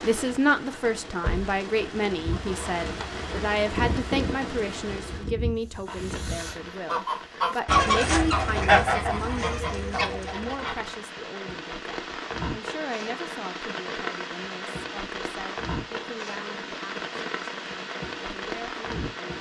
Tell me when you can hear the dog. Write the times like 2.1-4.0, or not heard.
not heard.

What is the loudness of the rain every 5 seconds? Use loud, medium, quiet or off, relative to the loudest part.
loud, medium, loud, loud.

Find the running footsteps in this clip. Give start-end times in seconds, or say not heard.
not heard.